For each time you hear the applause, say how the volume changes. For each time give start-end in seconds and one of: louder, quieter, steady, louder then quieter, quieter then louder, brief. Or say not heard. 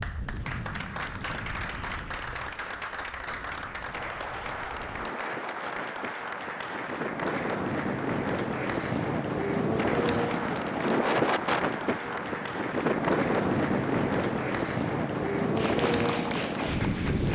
0.0-17.3 steady.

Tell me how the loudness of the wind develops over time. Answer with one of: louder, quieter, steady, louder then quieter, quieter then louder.
louder.